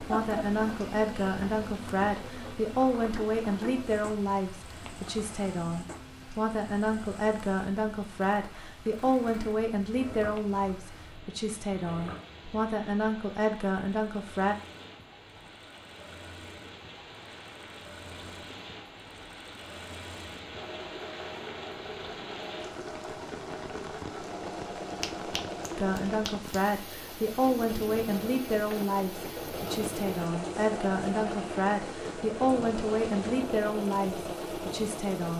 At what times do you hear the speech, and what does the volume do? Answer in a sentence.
You can hear the speech from 0.0 to 14.6 s, at a steady volume; and from 25.8 to 35.3 s, at a steady volume.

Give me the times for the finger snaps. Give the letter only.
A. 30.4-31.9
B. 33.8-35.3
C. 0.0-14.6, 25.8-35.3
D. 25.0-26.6
D.